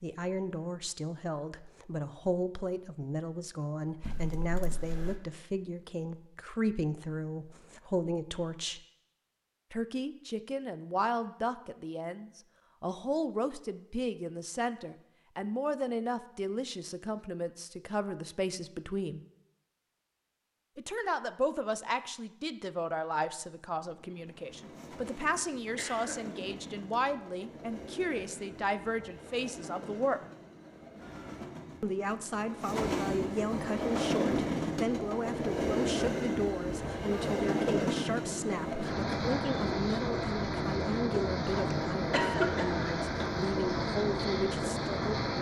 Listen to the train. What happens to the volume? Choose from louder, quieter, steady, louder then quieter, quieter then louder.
louder.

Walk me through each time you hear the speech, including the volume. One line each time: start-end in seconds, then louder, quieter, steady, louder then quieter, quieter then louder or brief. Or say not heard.
0.0-8.8 steady
9.7-19.2 steady
20.8-30.2 steady
31.8-45.3 steady.